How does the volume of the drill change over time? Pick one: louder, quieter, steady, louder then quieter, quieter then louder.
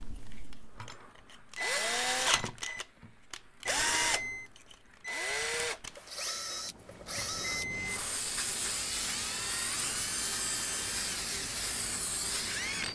quieter.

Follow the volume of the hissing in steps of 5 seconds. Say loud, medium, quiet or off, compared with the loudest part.
quiet, loud, loud.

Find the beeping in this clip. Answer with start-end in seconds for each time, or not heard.
3.8-4.5, 7.2-8.1.